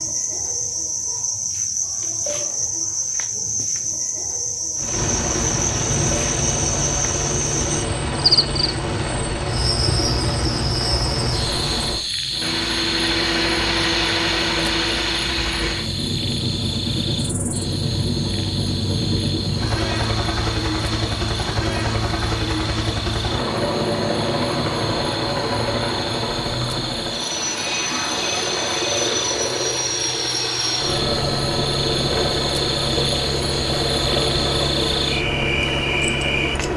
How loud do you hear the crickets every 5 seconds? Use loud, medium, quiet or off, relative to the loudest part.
loud, loud, loud, medium, medium, medium, loud, loud.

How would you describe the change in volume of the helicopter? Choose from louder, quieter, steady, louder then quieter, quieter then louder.
steady.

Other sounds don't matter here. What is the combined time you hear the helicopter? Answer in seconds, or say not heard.
32 s.